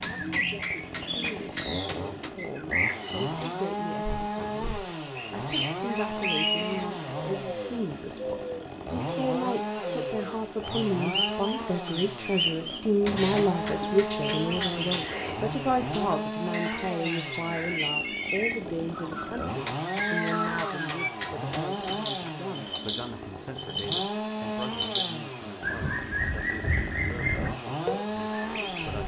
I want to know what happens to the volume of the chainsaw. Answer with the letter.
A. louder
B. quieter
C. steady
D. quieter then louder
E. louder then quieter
C.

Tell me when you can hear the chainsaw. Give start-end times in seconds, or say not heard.
0.0-29.0.